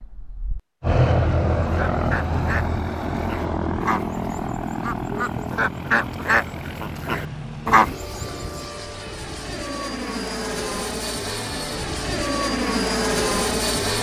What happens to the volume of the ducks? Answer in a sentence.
The volume of the ducks goes up.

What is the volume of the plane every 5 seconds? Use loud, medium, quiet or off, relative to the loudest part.
loud, medium, loud.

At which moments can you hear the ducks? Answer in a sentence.
The ducks can be heard from 1.6 to 8.7 s.